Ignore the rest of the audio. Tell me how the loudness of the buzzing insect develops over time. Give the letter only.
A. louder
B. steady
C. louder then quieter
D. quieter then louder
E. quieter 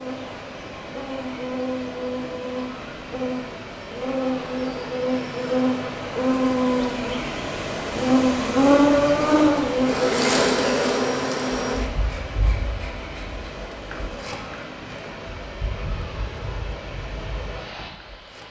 C.